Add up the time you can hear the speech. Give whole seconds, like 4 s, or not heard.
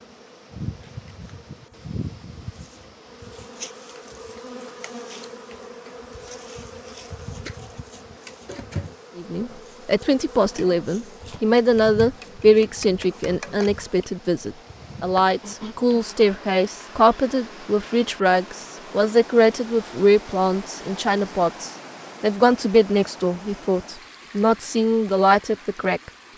17 s.